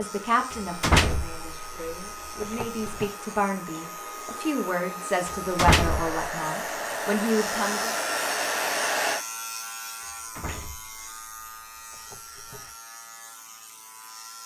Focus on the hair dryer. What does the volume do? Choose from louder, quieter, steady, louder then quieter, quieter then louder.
louder.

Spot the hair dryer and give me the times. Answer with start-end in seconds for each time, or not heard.
0.0-9.2.